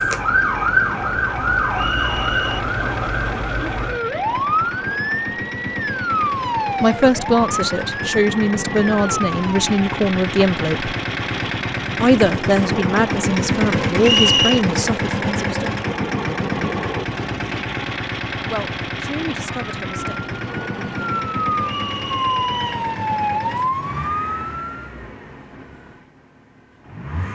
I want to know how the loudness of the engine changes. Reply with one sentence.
The volume of the engine goes up, then down.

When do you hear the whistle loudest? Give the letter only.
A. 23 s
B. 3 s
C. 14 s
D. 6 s
C.